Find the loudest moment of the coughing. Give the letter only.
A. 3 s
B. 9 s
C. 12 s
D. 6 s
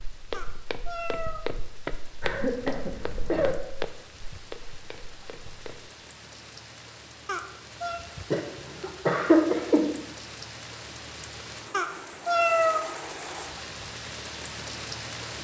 B.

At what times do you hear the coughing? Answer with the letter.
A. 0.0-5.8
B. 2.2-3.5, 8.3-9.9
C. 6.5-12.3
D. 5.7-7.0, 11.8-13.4
B.